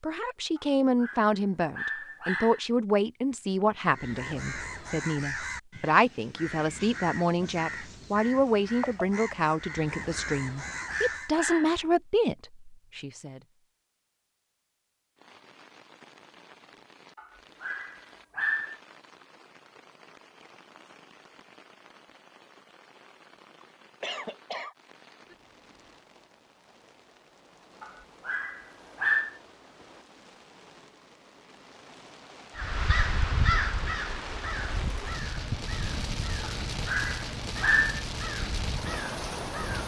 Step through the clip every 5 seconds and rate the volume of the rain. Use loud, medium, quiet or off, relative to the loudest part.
off, off, off, quiet, quiet, quiet, medium, loud.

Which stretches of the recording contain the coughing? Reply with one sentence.
The coughing can be heard from 23.6 to 24.8 s.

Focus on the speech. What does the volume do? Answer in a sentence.
The loudness of the speech stays about the same.